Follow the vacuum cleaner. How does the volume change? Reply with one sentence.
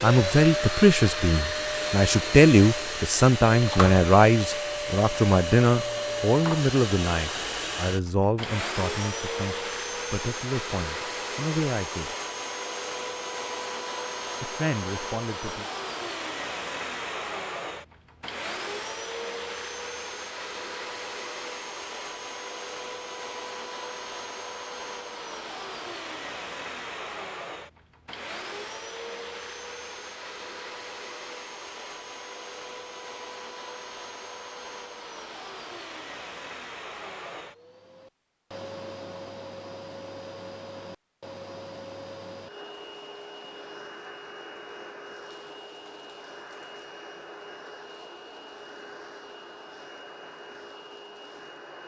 The volume of the vacuum cleaner goes down.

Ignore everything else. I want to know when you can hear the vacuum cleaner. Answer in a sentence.
The vacuum cleaner can be heard from 0.0 to 51.8 s.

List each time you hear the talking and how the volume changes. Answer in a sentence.
The talking can be heard from 0.0 to 12.2 s, getting quieter; and briefly from 14.4 to 15.7 s.